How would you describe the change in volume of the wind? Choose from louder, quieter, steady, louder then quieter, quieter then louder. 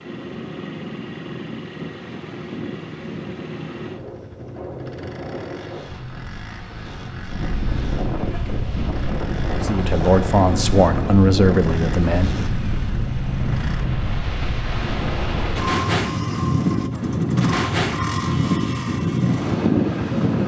louder.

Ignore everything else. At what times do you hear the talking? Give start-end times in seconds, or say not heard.
9.6-12.4.